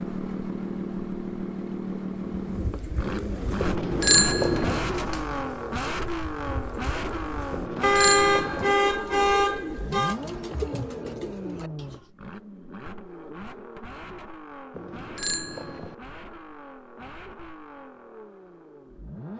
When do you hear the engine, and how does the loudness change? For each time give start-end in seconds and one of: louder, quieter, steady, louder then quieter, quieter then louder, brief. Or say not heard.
0.0-19.3 quieter.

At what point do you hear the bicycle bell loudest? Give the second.
4 s.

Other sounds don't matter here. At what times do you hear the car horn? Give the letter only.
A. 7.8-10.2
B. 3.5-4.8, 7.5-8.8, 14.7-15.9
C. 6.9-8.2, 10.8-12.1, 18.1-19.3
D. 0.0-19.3
A.